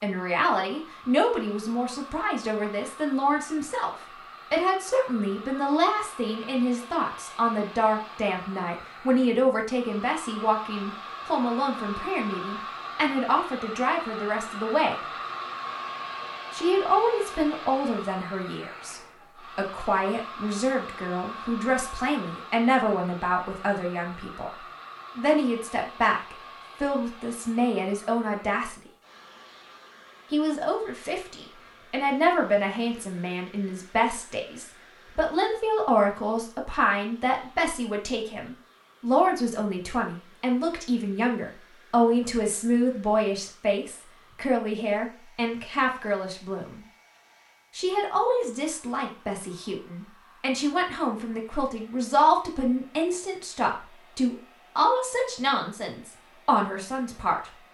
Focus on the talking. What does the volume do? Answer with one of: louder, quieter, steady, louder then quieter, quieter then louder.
steady.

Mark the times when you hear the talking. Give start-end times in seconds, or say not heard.
0.0-14.9, 16.5-28.8, 30.3-46.8, 47.8-57.5.